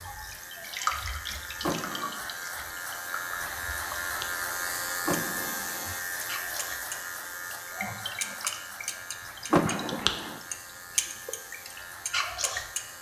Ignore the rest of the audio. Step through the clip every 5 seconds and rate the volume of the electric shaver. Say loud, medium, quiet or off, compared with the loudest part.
loud, loud, medium.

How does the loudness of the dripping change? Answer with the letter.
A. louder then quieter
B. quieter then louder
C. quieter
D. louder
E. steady
B.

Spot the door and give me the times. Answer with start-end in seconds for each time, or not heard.
1.6-2.1, 5.0-5.9, 9.5-10.4.